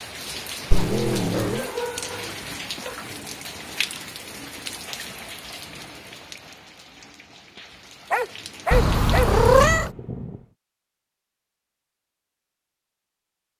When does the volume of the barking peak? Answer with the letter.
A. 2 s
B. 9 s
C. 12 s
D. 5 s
B.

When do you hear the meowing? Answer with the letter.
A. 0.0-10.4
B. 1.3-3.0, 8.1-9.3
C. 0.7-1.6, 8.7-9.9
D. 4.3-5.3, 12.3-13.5
C.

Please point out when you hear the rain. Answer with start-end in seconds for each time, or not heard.
0.0-10.4.